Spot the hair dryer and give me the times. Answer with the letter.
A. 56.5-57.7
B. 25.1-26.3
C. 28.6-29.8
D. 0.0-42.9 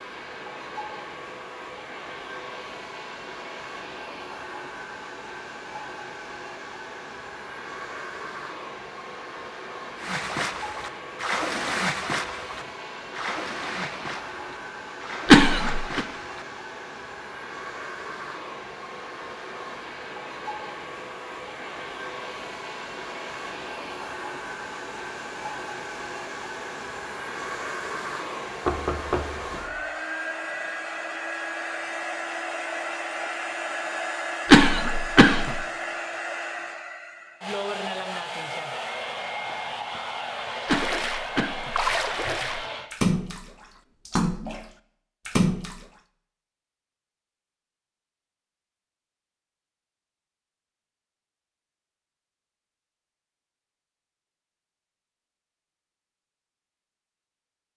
D.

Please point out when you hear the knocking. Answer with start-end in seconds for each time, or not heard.
28.6-29.8.